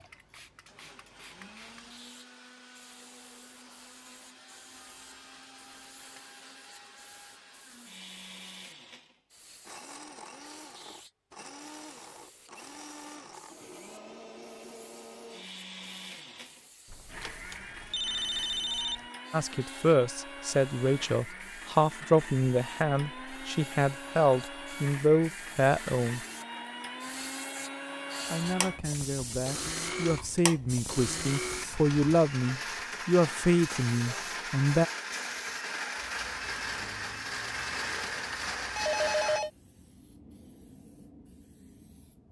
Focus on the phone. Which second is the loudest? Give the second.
39 s.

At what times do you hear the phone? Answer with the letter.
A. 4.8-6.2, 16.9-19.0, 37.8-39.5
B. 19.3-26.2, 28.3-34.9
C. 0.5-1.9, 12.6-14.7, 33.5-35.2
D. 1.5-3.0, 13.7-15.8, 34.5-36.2
A.